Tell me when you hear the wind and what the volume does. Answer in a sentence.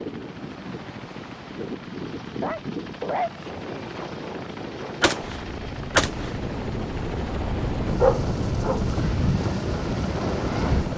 The wind can be heard from 0.0 to 10.9 s, getting louder.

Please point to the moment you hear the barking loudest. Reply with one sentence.
The loudest moment of the barking is at 8 seconds.